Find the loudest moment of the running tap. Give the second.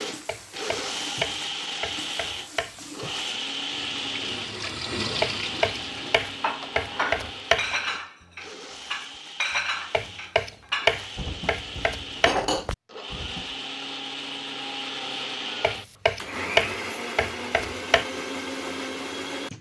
5 s.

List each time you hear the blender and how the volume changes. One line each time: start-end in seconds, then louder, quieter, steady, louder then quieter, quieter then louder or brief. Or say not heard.
0.0-19.5 quieter then louder.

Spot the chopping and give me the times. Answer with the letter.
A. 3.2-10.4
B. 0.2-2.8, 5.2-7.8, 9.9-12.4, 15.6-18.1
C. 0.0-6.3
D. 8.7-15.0
B.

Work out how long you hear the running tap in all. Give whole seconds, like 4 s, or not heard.
6 s.